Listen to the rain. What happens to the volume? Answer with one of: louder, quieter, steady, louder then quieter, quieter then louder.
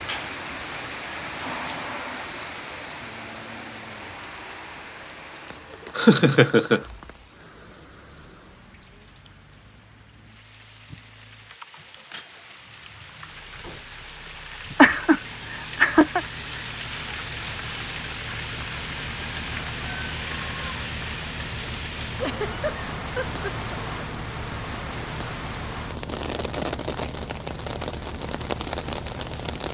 quieter then louder.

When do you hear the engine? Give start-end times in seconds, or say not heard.
0.0-29.6.